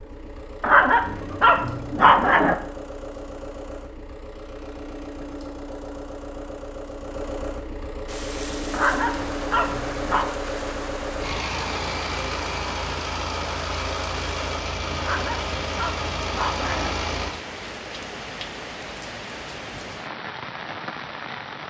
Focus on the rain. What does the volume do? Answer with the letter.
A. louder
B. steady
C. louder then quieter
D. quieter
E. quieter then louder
B.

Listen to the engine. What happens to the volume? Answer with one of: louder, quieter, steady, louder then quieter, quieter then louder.
louder.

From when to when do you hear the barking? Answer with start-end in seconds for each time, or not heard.
0.6-2.5, 8.7-10.3, 15.0-16.9.